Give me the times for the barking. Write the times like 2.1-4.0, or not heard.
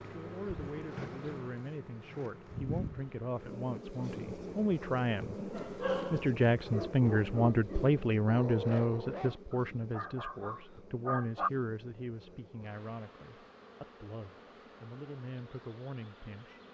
5.5-11.5.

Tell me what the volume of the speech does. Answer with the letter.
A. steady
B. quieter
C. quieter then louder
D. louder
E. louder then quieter
E.